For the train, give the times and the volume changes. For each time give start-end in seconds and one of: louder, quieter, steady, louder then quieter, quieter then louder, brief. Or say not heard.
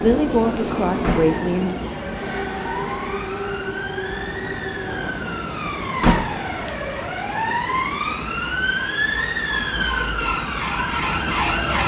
0.0-11.8 quieter.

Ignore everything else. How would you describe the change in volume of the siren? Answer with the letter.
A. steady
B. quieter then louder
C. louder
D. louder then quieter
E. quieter
C.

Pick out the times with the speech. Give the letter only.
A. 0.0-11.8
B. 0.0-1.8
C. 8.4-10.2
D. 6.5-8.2
B.